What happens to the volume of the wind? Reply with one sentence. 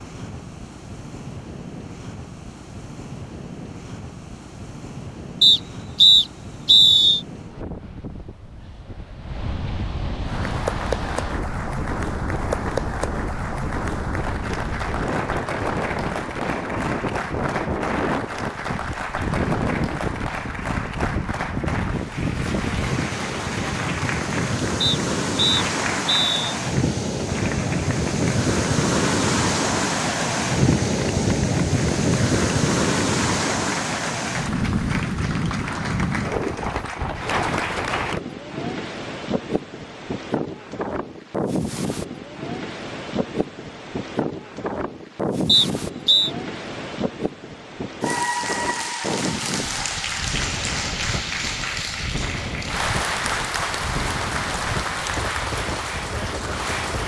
The volume of the wind goes up, then down.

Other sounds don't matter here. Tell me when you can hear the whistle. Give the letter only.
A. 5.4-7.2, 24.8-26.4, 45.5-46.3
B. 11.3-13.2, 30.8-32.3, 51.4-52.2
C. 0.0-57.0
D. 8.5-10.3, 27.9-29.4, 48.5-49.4
A.